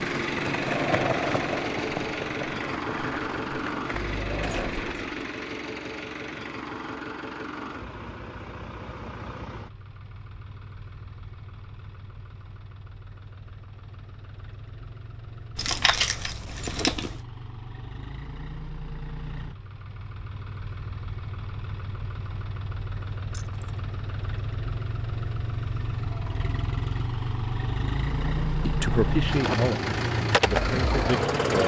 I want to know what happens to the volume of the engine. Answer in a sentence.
The volume of the engine goes down, then up.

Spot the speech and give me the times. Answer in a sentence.
The speech can be heard from 28.6 to 31.6 s.